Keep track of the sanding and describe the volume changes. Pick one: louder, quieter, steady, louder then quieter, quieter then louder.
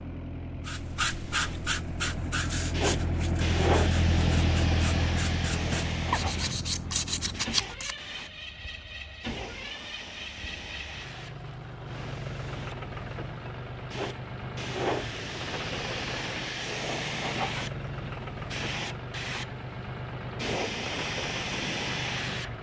quieter then louder.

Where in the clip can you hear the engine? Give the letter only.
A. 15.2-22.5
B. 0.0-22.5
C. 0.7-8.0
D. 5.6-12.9
B.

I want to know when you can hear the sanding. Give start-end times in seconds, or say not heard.
0.7-8.0.